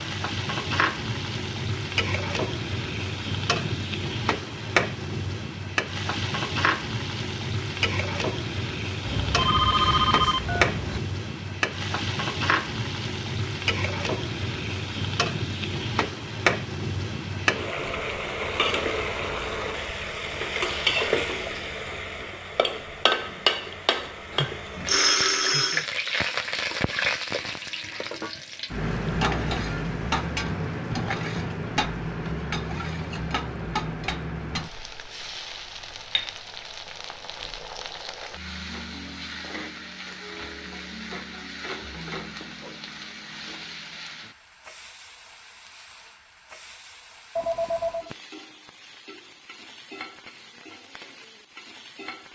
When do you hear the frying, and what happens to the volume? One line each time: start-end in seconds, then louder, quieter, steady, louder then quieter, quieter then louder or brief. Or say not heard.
0.0-52.3 quieter.